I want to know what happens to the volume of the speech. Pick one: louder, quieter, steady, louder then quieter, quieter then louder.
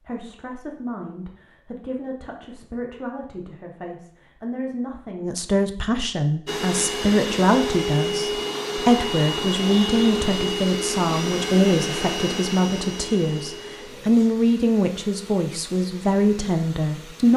louder.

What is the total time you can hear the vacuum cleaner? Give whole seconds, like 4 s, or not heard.
11 s.